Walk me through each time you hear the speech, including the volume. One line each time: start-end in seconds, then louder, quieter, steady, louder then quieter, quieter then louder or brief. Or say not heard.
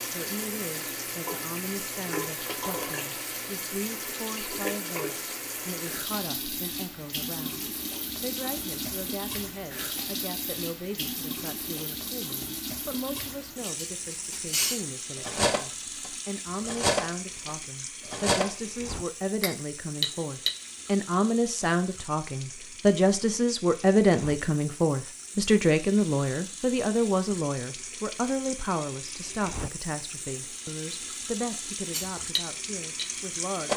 0.0-33.7 louder then quieter.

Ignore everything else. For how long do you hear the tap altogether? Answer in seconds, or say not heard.
34 s.